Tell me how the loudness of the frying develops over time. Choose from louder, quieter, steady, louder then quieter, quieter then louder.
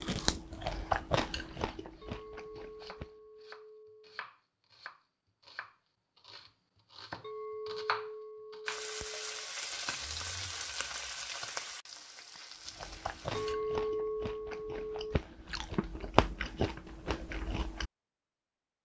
quieter.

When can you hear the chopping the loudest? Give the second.
8 s.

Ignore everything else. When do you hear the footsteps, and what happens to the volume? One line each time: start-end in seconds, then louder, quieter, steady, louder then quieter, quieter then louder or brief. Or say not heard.
not heard.